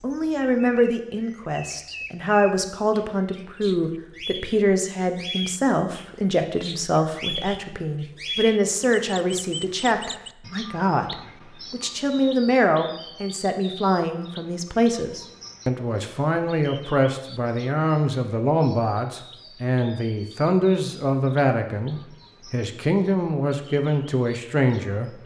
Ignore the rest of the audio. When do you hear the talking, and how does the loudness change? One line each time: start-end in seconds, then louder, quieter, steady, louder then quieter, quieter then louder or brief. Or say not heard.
0.0-25.2 steady.